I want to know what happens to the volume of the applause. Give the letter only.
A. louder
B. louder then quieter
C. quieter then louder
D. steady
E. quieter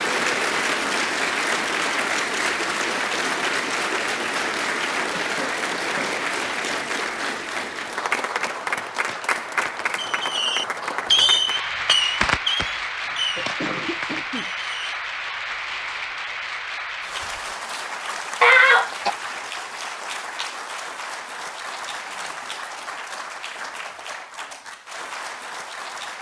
E.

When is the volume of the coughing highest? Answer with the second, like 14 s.
19 s.